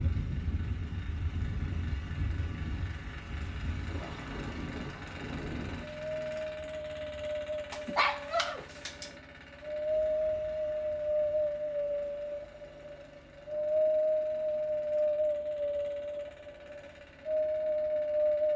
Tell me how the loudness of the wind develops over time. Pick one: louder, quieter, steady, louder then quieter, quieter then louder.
louder.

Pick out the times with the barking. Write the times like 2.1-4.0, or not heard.
7.7-9.2.